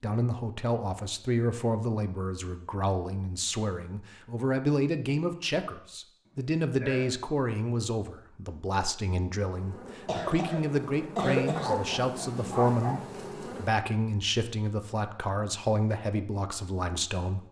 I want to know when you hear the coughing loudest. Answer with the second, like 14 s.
11 s.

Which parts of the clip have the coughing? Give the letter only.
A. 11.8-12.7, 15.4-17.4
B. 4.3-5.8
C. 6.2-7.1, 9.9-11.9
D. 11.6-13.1
C.